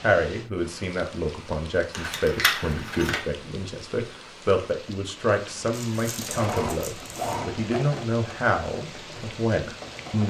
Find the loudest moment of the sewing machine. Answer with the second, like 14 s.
7 s.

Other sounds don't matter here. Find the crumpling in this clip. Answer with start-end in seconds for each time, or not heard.
1.9-3.2, 5.7-7.4.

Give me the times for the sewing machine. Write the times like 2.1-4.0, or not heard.
6.2-10.2.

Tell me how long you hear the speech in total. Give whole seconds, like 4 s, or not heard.
10 s.